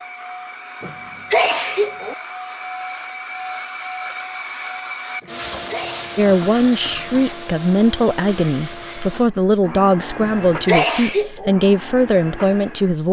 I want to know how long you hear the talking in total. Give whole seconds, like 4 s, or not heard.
7 s.